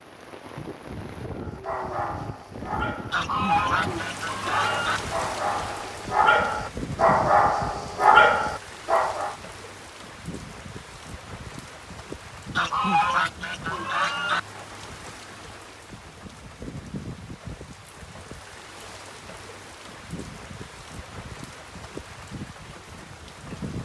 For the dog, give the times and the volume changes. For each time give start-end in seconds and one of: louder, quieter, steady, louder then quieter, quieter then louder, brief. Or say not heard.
1.4-9.3 louder.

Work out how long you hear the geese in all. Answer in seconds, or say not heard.
4 s.